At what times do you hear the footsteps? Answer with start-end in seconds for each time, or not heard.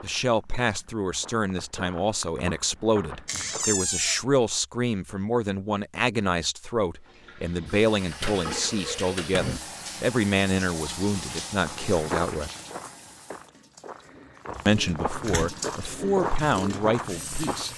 0.0-3.9, 11.6-17.7.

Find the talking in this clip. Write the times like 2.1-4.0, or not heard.
0.0-12.5, 14.7-17.7.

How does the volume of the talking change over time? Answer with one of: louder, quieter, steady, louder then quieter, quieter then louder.
steady.